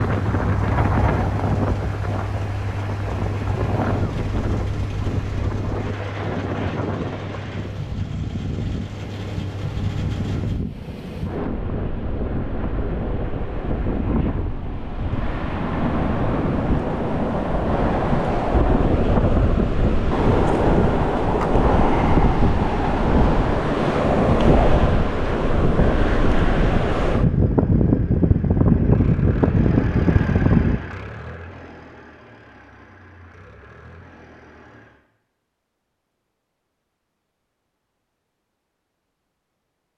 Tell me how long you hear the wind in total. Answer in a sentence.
You can hear the wind for 31 seconds altogether.